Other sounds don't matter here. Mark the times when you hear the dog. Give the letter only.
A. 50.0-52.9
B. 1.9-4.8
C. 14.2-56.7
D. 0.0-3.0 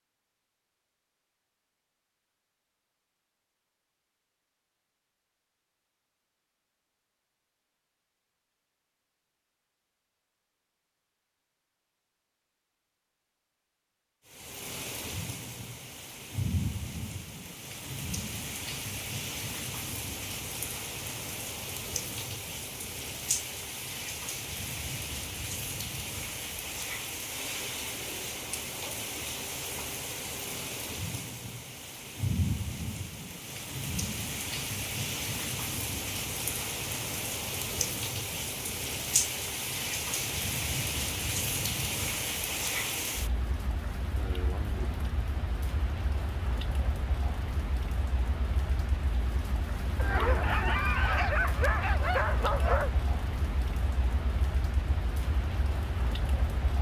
A.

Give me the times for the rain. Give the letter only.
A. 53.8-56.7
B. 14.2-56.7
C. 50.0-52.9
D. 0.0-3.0
B.